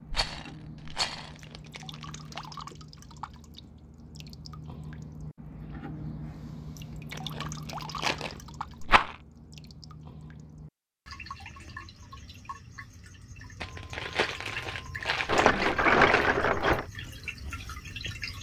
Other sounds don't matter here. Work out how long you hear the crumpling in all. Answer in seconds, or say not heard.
6 s.